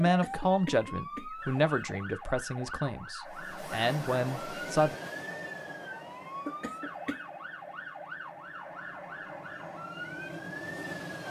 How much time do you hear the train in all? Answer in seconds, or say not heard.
8 s.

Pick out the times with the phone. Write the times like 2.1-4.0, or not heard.
not heard.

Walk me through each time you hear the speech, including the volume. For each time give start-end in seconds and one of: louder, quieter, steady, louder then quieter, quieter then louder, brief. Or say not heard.
0.0-5.0 quieter then louder.